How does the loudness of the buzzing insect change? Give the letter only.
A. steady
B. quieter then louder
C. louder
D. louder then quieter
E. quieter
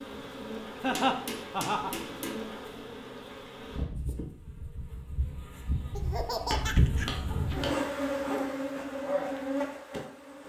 C.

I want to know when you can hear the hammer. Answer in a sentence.
The hammer can be heard from 0.9 to 2.4 s and from 6.5 to 7.8 s.